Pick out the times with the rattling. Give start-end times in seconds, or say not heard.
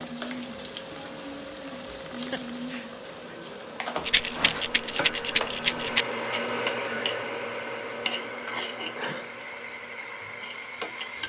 4.0-6.0.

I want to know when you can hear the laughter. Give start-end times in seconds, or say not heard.
1.9-2.9, 8.9-9.3.